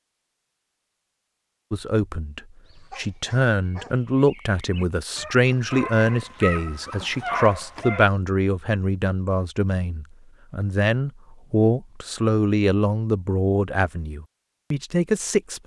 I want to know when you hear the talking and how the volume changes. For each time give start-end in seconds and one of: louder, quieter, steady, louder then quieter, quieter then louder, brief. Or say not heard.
1.7-15.6 steady.